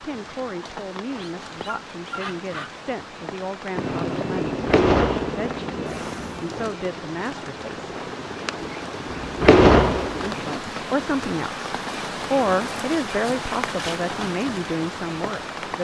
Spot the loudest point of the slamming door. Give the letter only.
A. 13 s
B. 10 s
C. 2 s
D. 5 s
B.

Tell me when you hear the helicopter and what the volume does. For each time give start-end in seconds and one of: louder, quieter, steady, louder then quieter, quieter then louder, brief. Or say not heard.
3.7-10.6 quieter.